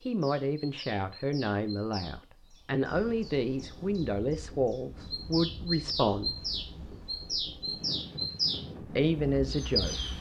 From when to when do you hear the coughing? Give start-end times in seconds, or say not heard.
not heard.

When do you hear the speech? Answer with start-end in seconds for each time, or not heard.
0.0-6.3, 8.8-9.9.